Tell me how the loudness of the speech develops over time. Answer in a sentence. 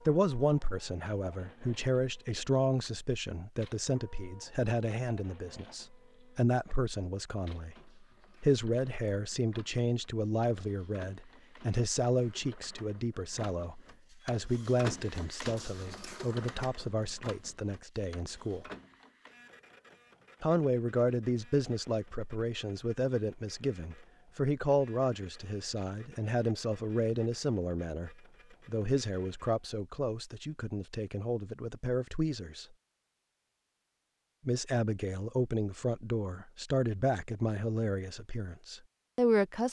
The volume of the speech stays about the same.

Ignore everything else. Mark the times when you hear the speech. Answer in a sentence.
You can hear the speech from 0.1 to 7.8 s, from 8.4 to 18.6 s, from 20.4 to 32.6 s and from 34.5 to 39.6 s.